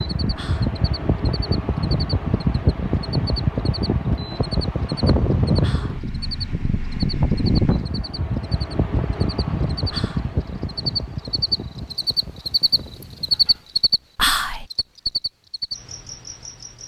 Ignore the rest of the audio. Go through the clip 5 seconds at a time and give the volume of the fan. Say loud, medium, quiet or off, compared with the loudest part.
loud, loud, medium, off.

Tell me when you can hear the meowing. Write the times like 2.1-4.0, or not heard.
not heard.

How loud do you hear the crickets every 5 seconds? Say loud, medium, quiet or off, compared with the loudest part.
quiet, medium, loud, medium.